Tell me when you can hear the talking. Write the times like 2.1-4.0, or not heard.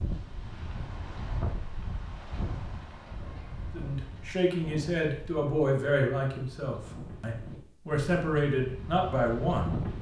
3.8-9.8.